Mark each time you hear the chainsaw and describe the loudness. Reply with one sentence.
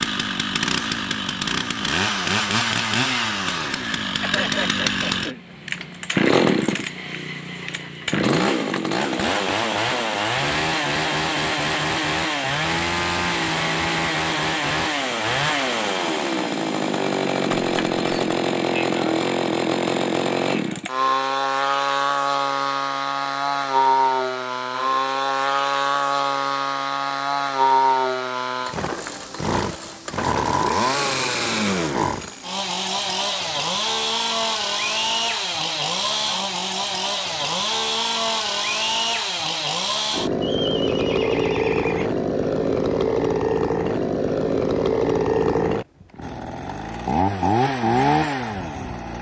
You can hear the chainsaw from 0.0 to 49.1 s, at a steady volume.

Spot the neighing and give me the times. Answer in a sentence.
The neighing can be heard from 4.2 to 5.5 s, from 17.6 to 18.1 s and from 40.4 to 42.1 s.